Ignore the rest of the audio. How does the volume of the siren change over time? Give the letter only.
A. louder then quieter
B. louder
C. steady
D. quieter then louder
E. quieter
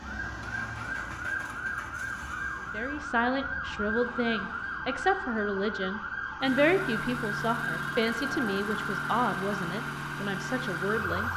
C.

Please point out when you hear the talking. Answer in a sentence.
The talking can be heard from 2.7 to 11.3 s.